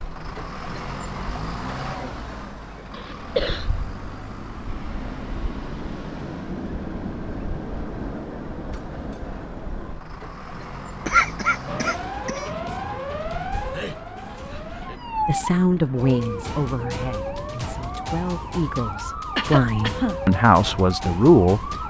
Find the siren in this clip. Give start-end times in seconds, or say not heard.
11.7-21.8.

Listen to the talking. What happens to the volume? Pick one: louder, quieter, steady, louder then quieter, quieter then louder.
quieter then louder.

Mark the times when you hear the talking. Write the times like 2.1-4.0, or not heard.
15.2-21.6.